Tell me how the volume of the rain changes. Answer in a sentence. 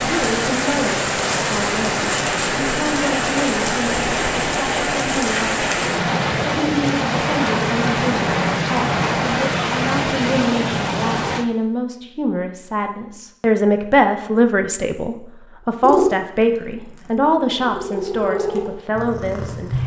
The volume of the rain stays about the same.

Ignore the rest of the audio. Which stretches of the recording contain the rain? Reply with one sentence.
The rain can be heard from 0.0 to 11.4 s.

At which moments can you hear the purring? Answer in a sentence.
You can hear the purring from 15.8 to 19.8 s.